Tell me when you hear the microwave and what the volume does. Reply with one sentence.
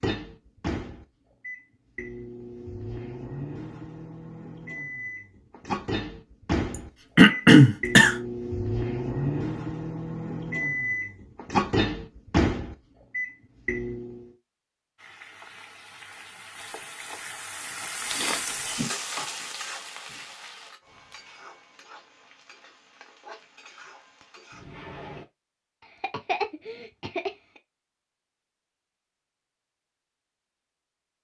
You can hear the microwave from 0.0 to 14.2 s, getting louder.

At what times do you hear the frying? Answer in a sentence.
You can hear the frying from 14.9 to 25.2 s.